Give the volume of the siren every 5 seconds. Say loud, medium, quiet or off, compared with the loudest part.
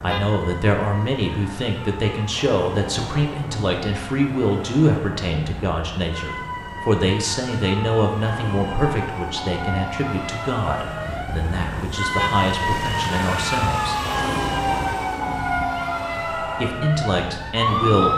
quiet, medium, loud, loud.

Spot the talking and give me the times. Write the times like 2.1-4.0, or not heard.
0.0-13.9, 16.4-18.1.